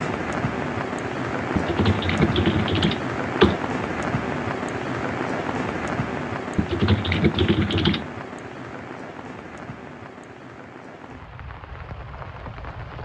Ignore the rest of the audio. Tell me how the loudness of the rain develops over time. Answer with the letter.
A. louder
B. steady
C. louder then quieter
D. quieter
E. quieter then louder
D.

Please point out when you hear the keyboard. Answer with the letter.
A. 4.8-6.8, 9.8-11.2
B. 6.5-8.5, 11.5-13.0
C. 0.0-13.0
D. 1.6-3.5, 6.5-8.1
D.